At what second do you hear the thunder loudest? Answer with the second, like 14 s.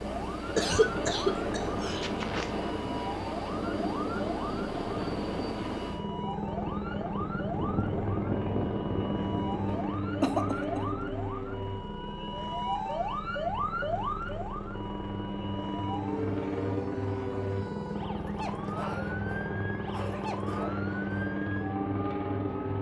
8 s.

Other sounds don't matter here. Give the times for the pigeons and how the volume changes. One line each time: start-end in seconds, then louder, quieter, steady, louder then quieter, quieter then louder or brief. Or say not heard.
not heard.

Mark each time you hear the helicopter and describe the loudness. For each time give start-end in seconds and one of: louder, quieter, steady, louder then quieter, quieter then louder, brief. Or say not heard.
0.0-22.7 steady.